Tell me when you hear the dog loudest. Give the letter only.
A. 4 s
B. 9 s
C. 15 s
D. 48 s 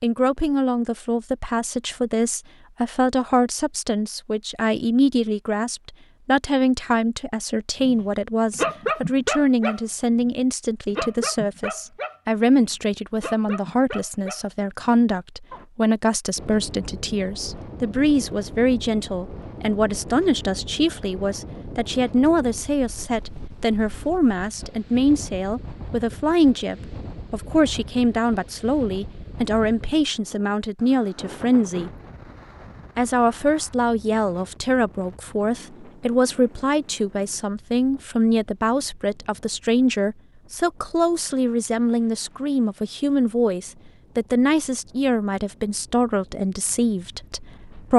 B.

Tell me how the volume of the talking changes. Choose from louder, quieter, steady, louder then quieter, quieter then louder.
steady.